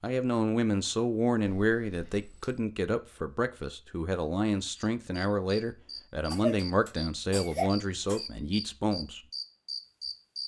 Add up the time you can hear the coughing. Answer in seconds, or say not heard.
3 s.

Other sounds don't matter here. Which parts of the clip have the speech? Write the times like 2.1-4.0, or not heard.
0.0-9.2.